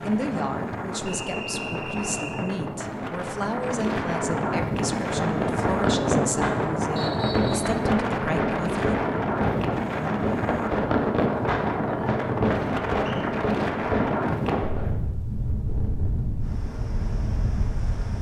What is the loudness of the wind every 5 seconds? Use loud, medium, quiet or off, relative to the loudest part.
loud, loud, loud, medium.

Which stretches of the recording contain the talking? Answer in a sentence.
You can hear the talking from 0.0 to 8.8 s.